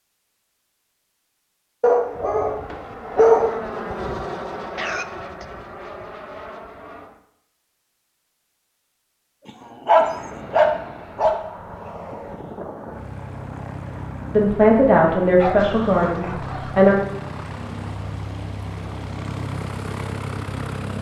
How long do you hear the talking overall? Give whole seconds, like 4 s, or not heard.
3 s.